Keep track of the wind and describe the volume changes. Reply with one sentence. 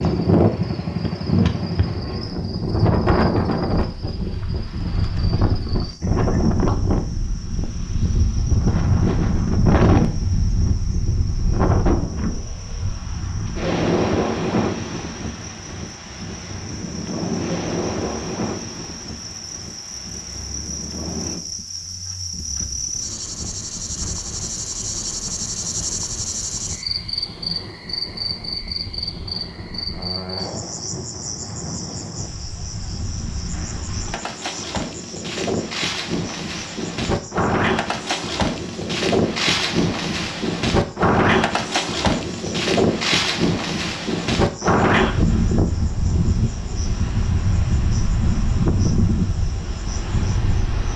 The loudness of the wind goes down, then up.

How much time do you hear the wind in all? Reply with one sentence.
The wind can be heard for 51 seconds in total.